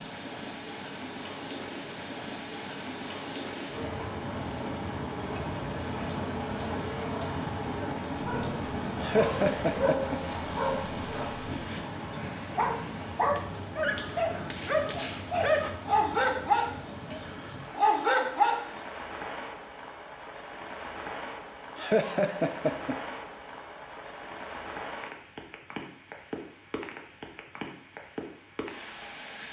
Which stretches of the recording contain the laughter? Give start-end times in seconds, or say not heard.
9.0-10.2, 21.8-22.9.